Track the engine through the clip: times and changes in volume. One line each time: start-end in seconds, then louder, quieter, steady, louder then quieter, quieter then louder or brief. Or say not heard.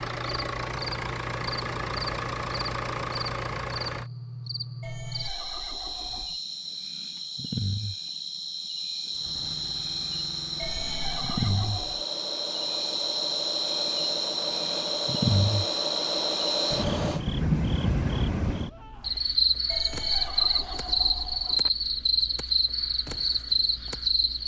0.0-4.1 steady
9.1-17.2 louder.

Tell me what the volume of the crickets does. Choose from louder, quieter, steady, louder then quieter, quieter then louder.
louder.